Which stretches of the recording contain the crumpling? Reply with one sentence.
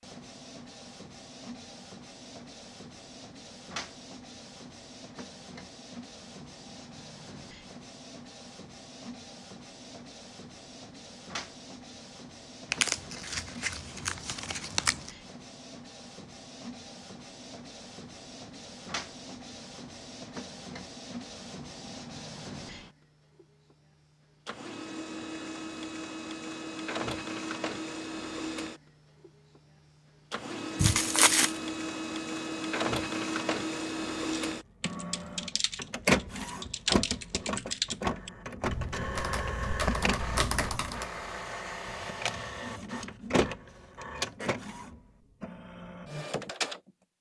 You can hear the crumpling from 12.7 to 15.1 s and from 30.8 to 31.6 s.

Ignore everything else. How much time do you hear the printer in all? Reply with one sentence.
The printer can be heard for 47 seconds in total.